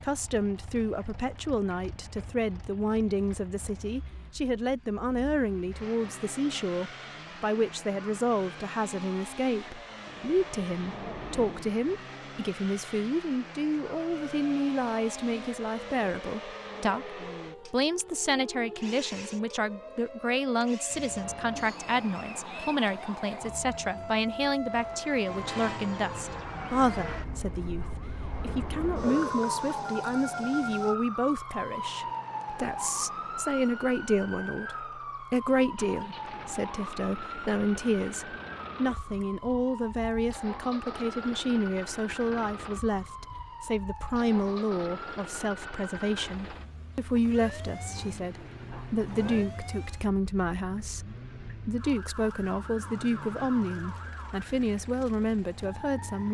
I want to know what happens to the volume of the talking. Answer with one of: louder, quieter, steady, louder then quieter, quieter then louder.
steady.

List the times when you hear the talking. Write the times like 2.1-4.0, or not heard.
0.0-56.3.